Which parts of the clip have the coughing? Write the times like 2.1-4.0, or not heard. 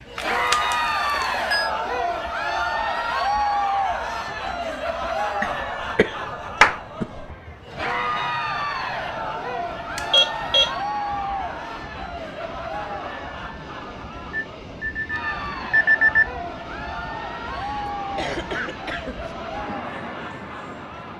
5.4-7.2, 17.6-19.3.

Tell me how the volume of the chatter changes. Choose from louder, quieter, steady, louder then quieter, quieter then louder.
quieter.